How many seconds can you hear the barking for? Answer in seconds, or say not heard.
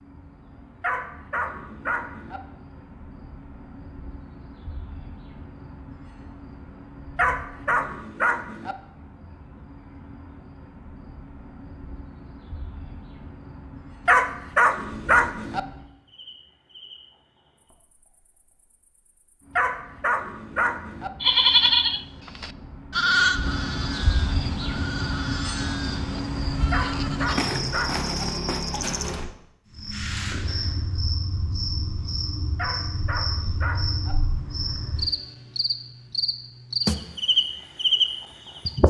9 s.